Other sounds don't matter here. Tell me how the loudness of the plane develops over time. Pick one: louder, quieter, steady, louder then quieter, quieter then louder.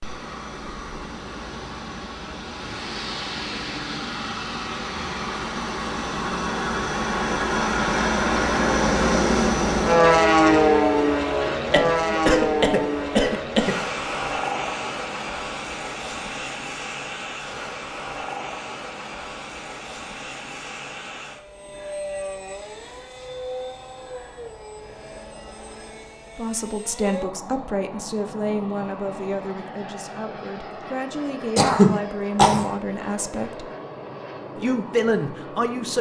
louder then quieter.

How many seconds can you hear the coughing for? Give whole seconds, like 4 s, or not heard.
3 s.